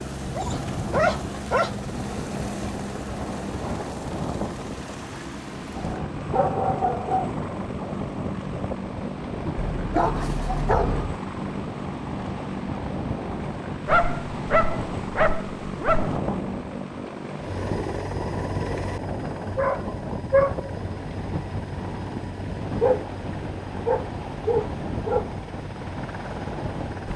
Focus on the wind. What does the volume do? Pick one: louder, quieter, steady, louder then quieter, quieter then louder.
steady.